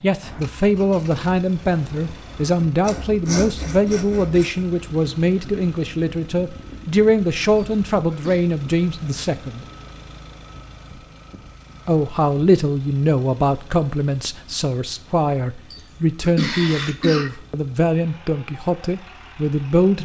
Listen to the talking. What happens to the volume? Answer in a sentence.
The volume of the talking stays about the same.